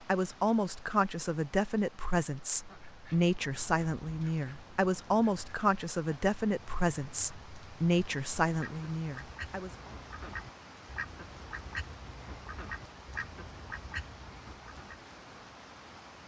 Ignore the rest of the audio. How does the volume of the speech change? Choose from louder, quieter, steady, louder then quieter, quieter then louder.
steady.